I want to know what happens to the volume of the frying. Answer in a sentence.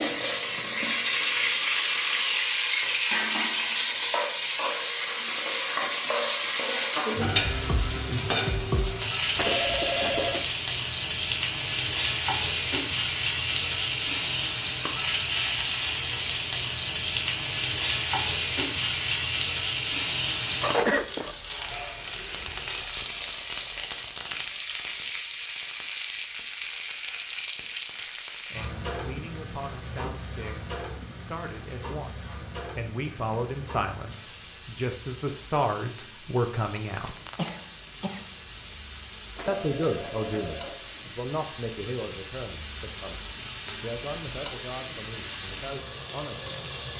The loudness of the frying goes down.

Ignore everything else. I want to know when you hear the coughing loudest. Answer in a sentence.
The volume of the coughing peaks at 21 seconds.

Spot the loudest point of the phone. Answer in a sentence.
The loudest moment of the phone is at 10 seconds.